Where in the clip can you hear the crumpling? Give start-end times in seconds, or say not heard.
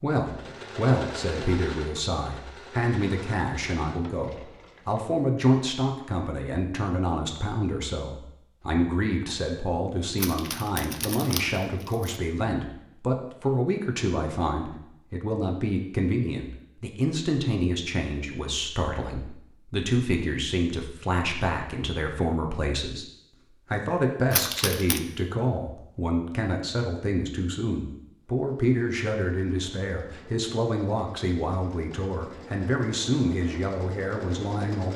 10.2-12.2, 24.3-25.0.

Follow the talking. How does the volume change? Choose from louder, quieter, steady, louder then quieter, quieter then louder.
steady.